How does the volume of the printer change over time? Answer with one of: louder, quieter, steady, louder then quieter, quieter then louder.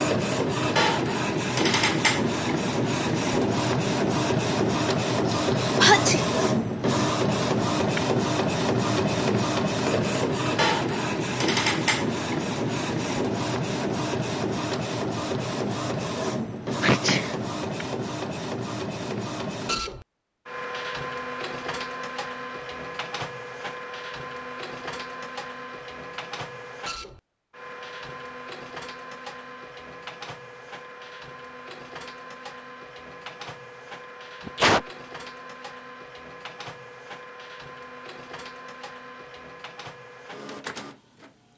quieter.